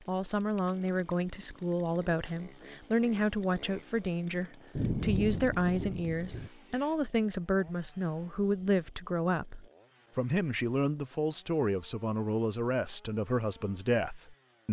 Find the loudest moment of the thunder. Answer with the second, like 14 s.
5 s.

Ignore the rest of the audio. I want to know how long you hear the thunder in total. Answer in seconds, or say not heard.
2 s.